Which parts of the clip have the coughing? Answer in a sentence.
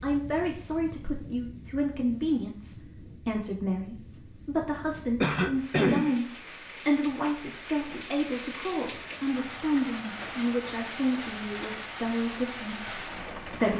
The coughing can be heard from 5.2 to 6.2 s.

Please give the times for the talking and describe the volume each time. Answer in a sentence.
You can hear the talking from 0.0 to 13.7 s, at a steady volume.